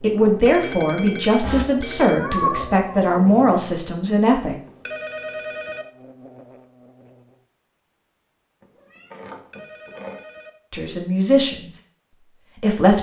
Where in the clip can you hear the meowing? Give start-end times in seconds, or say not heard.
1.4-3.4, 8.6-10.2.